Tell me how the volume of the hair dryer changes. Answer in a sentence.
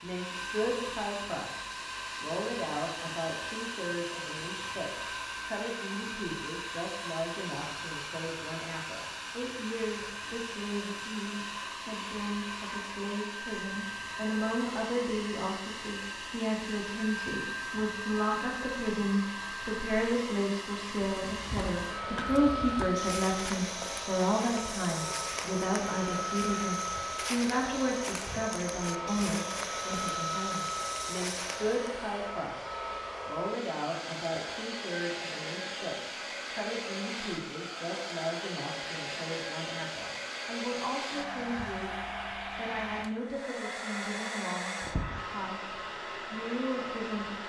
The volume of the hair dryer stays about the same.